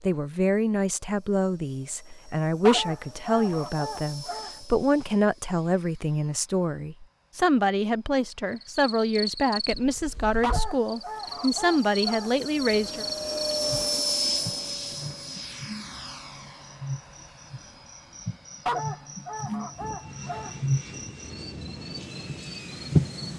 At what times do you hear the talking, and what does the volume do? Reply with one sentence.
You can hear the talking from 0.0 to 13.1 s, at a steady volume.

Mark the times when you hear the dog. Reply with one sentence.
You can hear the dog from 2.6 to 4.6 s, from 10.4 to 12.3 s and from 18.6 to 20.6 s.